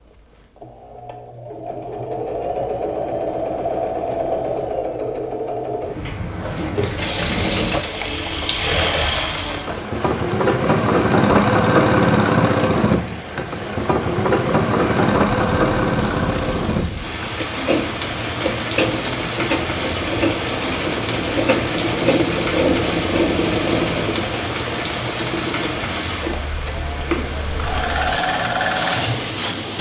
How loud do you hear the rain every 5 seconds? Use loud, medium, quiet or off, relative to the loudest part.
off, loud, medium, loud, loud, loud.